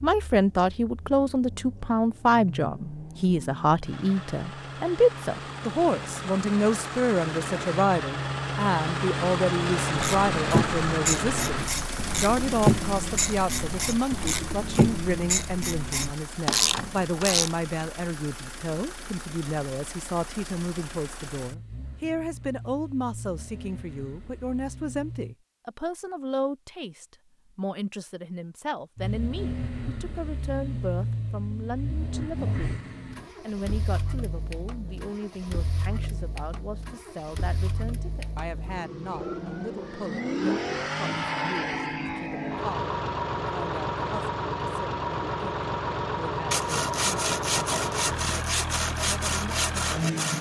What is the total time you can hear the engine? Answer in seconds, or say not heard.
47 s.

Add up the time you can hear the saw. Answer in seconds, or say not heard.
4 s.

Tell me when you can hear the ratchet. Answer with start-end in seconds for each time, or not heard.
9.9-17.5.